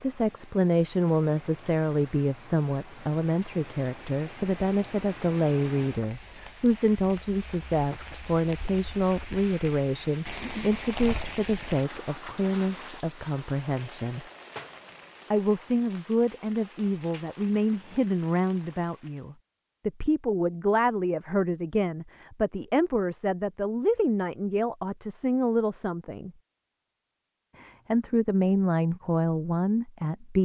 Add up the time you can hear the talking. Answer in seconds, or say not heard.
28 s.